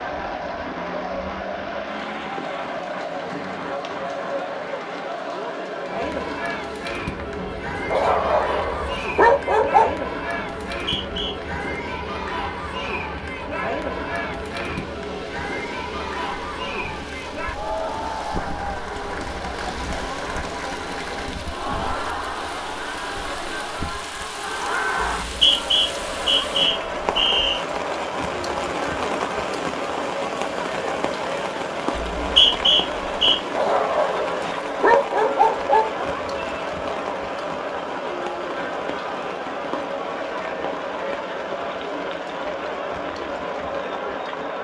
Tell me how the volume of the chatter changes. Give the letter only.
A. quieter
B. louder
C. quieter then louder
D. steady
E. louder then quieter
D.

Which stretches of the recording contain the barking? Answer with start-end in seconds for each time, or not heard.
7.9-10.0, 33.5-36.0.